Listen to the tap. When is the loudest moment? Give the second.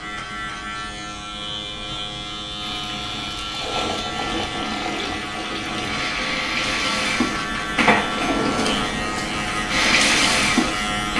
10 s.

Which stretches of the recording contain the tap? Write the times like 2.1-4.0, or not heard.
2.6-11.1.